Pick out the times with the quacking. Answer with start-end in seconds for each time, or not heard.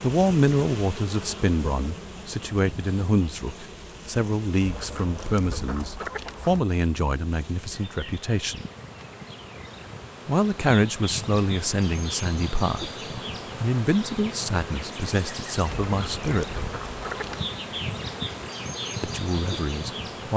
4.6-6.6, 15.8-17.4.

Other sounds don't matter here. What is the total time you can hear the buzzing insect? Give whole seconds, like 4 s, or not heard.
20 s.